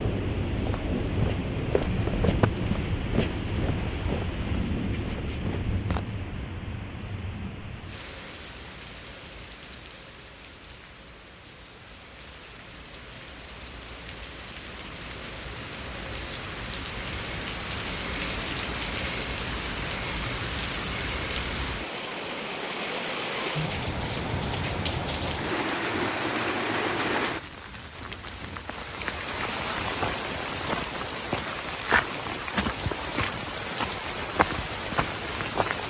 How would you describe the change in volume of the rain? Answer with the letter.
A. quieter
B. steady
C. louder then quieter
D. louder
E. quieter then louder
E.